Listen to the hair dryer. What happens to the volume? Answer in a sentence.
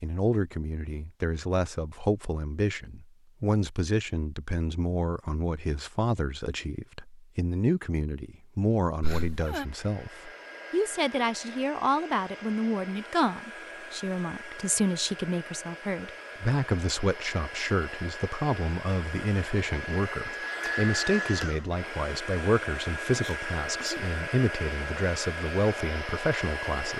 The volume of the hair dryer goes up.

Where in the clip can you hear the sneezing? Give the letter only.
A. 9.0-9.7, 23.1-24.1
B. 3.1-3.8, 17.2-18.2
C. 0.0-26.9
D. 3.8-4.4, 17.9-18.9
A.